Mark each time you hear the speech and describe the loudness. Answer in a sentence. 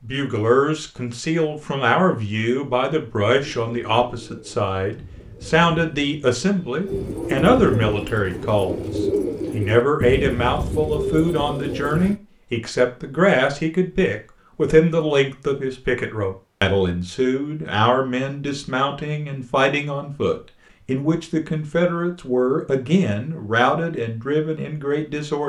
The speech can be heard from 0.0 to 25.4 s, at a steady volume.